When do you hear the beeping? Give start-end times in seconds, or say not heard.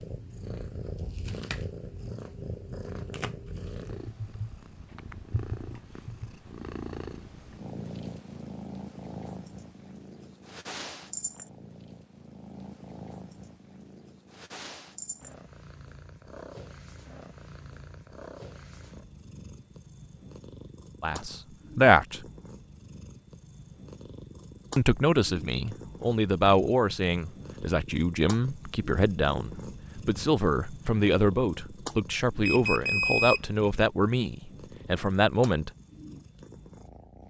32.5-33.5.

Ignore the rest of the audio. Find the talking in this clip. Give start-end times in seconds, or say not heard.
21.0-22.2, 24.8-35.7.